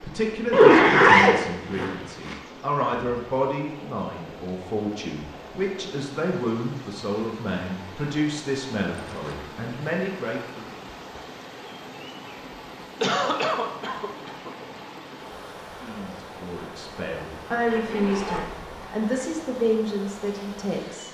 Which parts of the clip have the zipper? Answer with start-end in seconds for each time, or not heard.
0.5-2.4, 8.9-9.4, 17.6-18.9.